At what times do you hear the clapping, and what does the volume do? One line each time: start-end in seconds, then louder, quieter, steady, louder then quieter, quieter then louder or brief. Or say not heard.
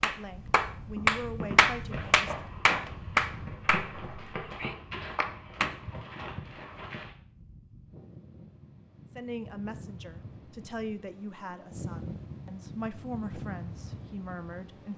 0.0-5.7 quieter.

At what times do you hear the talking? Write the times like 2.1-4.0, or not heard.
0.0-2.1, 9.2-14.9.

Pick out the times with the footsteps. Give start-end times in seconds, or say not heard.
0.9-7.1.